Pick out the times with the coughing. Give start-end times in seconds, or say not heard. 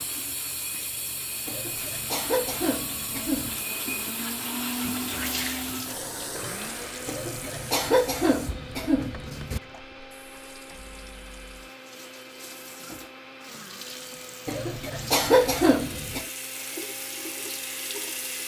1.4-3.6, 7.0-9.6, 14.4-16.2.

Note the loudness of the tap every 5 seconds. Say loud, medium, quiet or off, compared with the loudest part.
loud, loud, medium, loud.